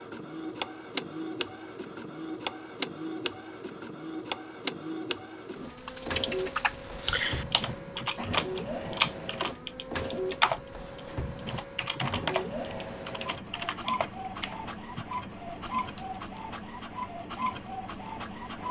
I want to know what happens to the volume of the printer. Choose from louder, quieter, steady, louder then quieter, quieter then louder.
steady.